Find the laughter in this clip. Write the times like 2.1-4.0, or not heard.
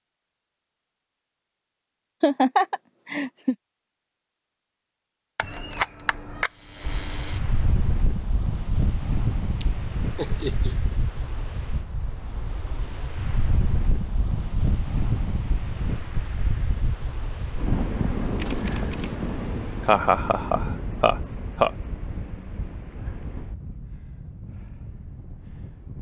2.2-3.5, 9.6-10.9, 19.9-21.7.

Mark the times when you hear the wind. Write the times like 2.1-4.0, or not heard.
6.8-25.9.